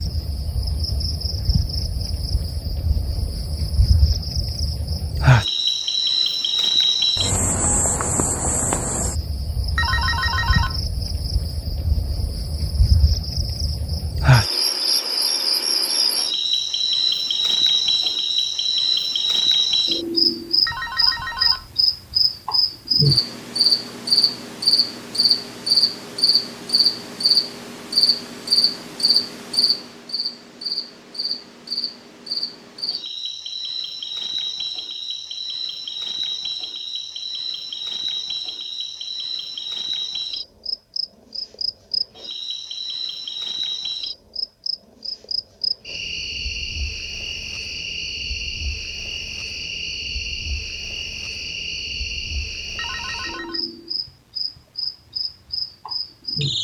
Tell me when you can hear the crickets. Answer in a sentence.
The crickets can be heard from 0.0 to 56.5 s.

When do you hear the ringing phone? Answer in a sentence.
You can hear the ringing phone from 9.8 to 10.8 s, from 20.6 to 21.7 s and from 52.8 to 53.6 s.